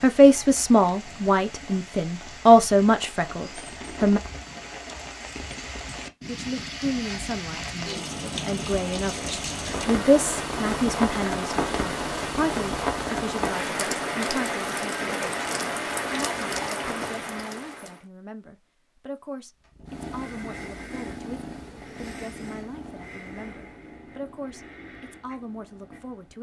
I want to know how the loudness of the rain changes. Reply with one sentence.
The loudness of the rain goes up.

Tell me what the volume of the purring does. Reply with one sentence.
The loudness of the purring goes down.